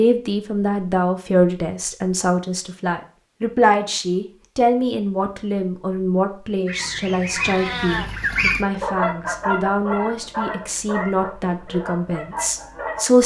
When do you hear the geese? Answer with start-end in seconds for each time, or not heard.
6.7-13.1.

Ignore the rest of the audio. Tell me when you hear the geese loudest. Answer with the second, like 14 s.
8 s.